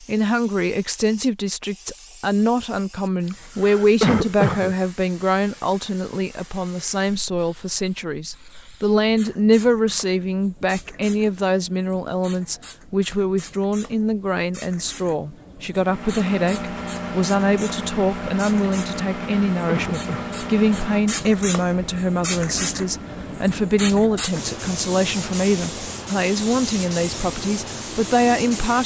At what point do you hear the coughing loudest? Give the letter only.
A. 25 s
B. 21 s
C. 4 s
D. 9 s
C.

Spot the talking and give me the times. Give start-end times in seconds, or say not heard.
0.0-28.8.